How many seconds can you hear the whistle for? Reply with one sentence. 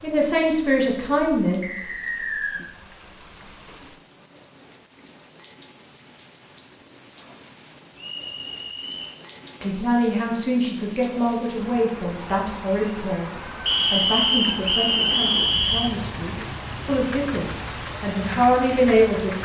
The whistle can be heard for 4 seconds in total.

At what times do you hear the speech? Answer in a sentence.
You can hear the speech from 0.0 to 1.6 s and from 9.6 to 19.3 s.